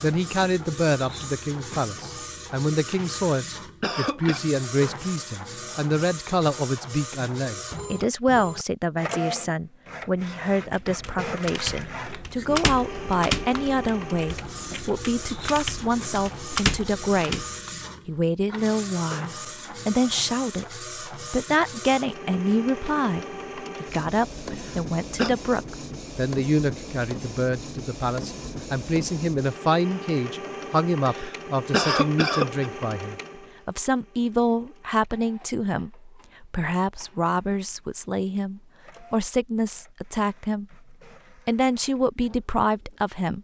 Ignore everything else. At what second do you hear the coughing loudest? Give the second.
32 s.